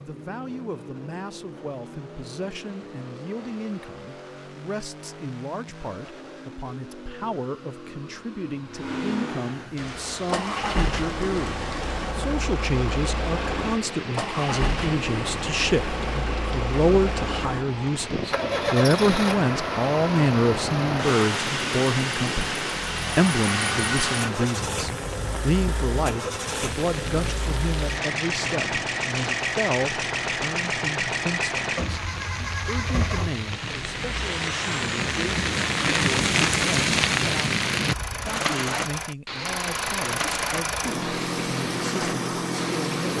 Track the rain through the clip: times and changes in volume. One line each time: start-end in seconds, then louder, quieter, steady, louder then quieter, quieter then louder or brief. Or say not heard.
9.8-43.1 louder.